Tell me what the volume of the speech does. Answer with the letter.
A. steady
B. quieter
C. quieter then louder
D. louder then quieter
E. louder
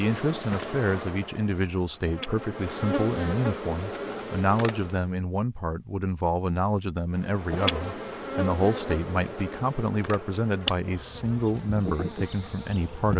A.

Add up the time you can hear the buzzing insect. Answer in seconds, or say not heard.
11 s.